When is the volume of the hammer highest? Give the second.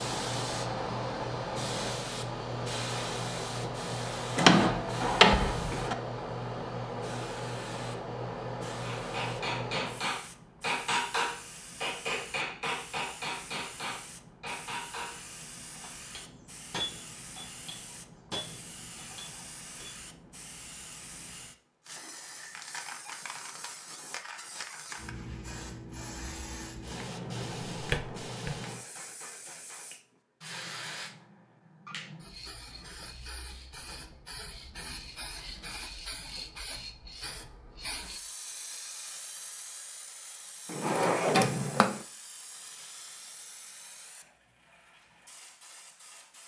11 s.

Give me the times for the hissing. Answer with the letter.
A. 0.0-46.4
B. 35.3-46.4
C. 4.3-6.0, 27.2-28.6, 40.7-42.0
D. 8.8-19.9
A.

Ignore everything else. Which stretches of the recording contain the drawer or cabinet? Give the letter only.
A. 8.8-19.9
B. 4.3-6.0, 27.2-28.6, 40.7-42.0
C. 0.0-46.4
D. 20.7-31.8
B.